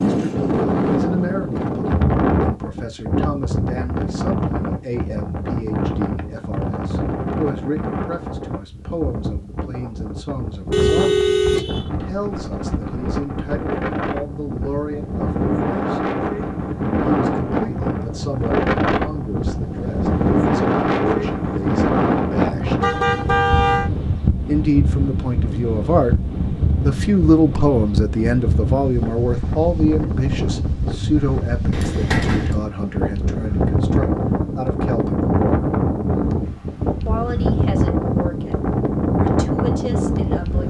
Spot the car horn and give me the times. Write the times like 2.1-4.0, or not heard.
10.7-11.9, 22.8-23.9, 31.7-32.5.